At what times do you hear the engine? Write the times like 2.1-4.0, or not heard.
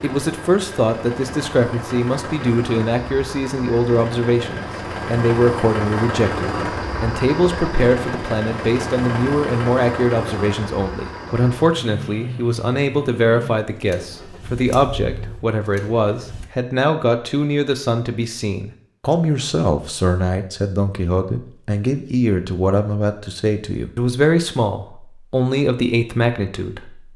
0.0-16.4.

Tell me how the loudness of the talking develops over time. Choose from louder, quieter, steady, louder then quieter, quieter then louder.
steady.